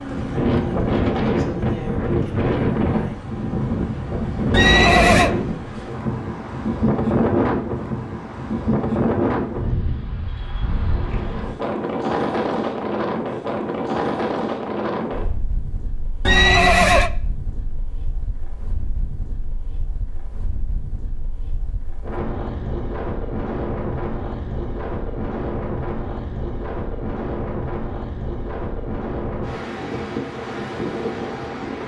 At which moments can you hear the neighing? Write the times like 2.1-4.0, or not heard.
4.5-5.3, 16.2-17.1.